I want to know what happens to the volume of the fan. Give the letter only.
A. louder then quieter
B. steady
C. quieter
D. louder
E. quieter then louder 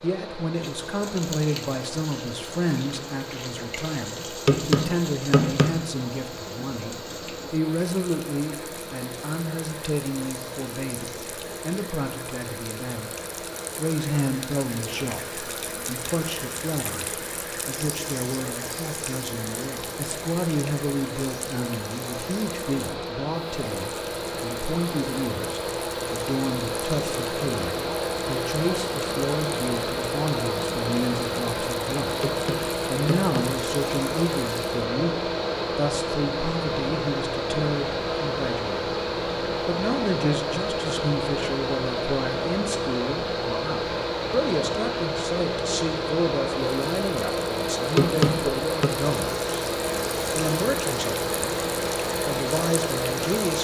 D.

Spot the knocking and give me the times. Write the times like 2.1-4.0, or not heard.
4.5-5.8, 32.2-33.4, 48.0-48.9.